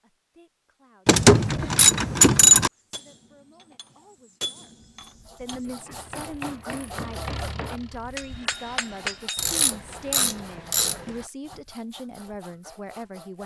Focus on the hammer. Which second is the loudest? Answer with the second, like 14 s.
9 s.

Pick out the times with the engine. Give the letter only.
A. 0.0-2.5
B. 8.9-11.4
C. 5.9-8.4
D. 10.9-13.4
C.